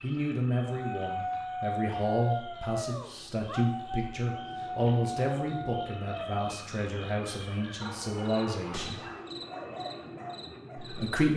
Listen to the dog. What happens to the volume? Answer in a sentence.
The volume of the dog goes down.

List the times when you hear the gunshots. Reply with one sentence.
You can hear the gunshots from 8.7 to 9.2 s.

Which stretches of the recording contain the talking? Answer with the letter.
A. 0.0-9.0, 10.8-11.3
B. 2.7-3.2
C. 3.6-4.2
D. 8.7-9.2
A.